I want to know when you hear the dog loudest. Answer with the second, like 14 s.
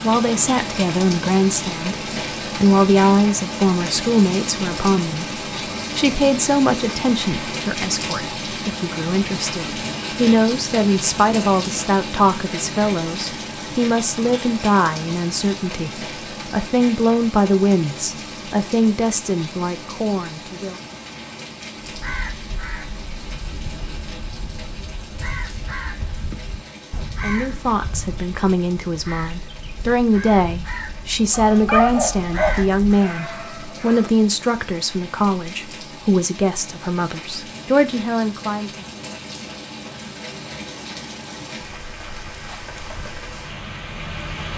32 s.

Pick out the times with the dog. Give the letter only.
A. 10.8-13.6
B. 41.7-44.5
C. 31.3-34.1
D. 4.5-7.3
C.